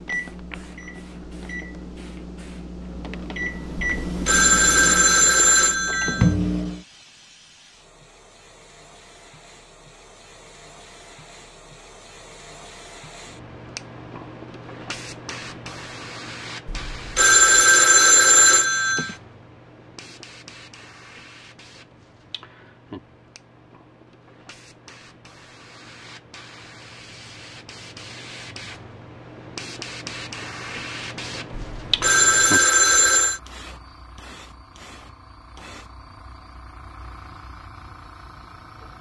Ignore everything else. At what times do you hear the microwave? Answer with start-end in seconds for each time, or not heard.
0.0-6.8.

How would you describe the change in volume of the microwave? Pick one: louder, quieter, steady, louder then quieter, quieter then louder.
louder.